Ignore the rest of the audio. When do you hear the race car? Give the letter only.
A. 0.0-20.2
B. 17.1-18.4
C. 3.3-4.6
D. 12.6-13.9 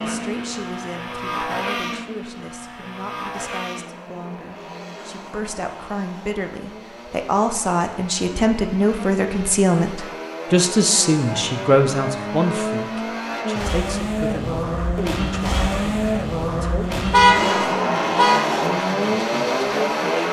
A.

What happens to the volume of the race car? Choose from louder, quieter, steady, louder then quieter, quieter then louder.
quieter then louder.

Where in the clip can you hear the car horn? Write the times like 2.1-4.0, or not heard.
17.1-18.4.